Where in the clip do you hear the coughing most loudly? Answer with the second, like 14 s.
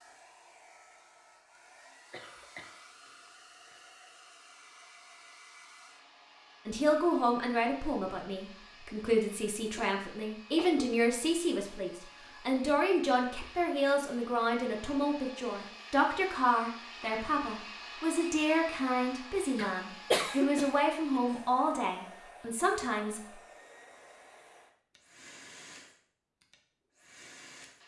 20 s.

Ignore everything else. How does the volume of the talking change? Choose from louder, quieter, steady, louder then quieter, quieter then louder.
steady.